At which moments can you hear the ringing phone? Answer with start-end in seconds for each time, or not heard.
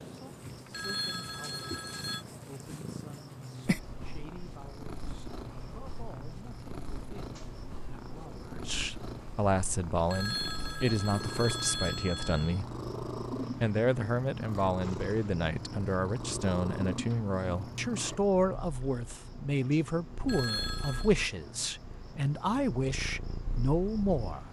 0.7-2.2, 10.1-12.6, 20.2-21.1.